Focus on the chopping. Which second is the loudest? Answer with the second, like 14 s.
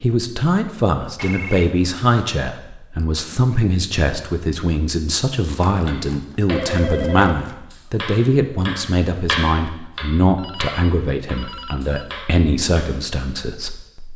9 s.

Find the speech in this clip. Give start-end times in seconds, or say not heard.
0.0-14.1.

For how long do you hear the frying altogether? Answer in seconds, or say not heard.
not heard.